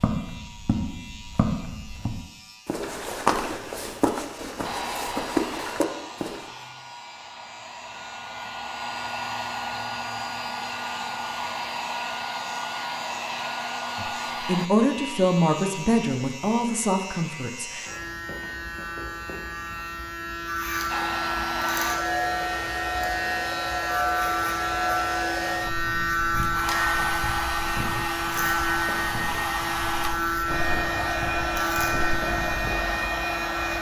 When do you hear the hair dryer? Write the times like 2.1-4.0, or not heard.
4.6-14.7, 20.9-33.7.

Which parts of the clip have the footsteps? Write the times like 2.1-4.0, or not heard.
0.0-6.5, 25.5-32.8.